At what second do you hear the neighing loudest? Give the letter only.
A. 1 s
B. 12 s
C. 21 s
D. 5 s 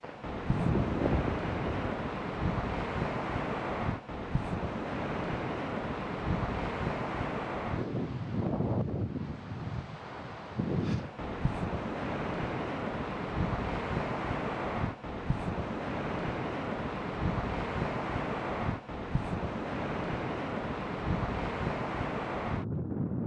A.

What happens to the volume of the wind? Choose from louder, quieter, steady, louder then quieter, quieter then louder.
steady.